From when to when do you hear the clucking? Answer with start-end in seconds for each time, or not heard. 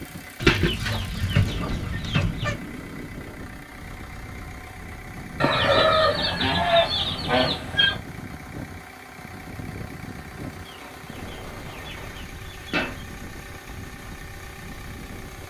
0.4-2.5, 5.4-8.0, 10.7-13.1.